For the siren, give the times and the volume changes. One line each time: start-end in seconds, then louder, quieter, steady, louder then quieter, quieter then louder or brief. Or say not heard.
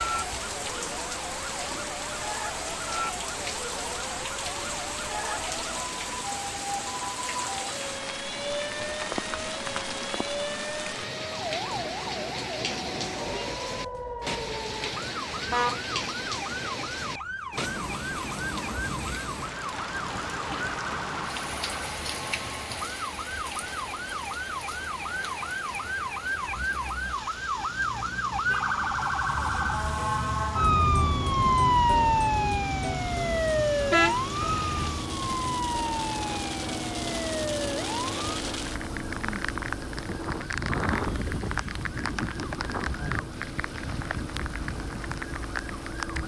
0.0-46.2 louder then quieter.